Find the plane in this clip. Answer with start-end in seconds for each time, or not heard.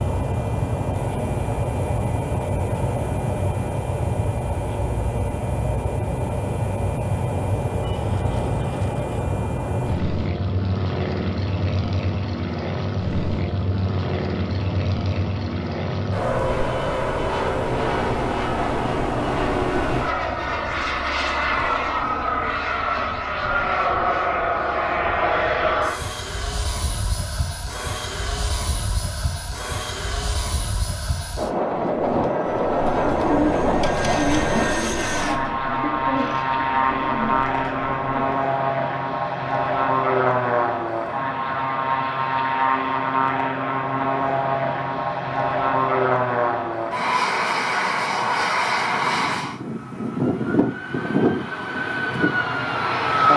0.0-53.3.